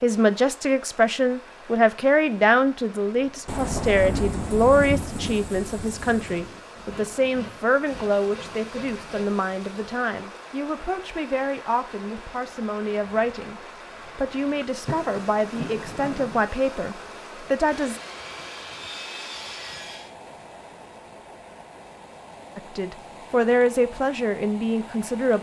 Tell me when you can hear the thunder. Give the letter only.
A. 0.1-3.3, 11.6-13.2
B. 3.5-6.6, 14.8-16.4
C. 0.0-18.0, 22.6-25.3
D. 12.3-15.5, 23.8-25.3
B.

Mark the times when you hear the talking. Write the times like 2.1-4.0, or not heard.
0.0-18.0, 22.6-25.3.